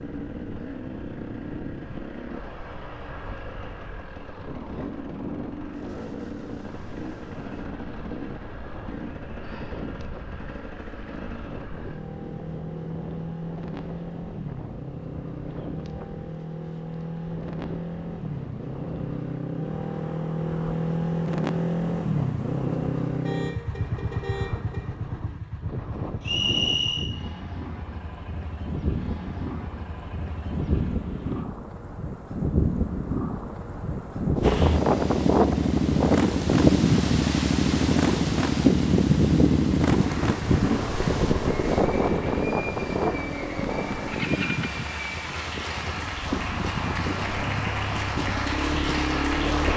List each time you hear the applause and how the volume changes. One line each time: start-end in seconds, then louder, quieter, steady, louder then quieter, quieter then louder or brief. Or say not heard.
40.0-49.7 louder.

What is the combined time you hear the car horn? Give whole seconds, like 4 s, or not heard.
2 s.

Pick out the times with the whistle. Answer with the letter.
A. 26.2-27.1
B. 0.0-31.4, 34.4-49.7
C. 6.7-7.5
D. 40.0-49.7
A.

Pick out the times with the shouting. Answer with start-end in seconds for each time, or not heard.
not heard.